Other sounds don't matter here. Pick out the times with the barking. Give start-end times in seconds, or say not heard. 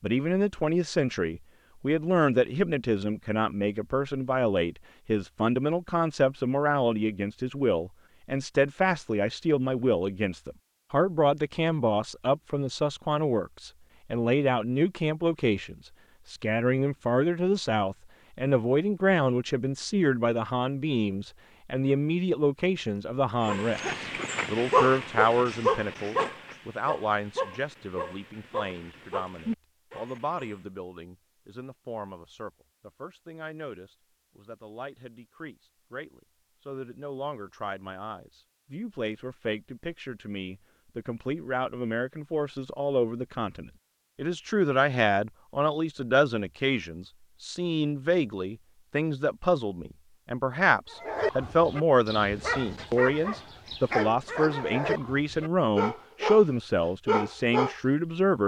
23.4-30.6, 50.9-56.5, 57.0-57.8.